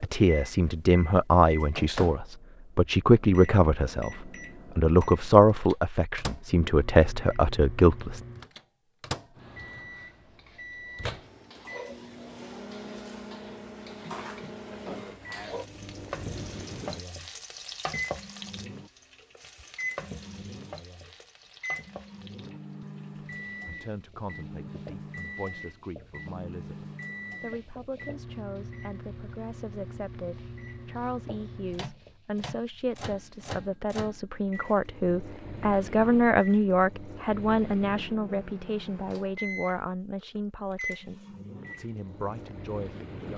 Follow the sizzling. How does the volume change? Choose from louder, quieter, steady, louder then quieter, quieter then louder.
louder then quieter.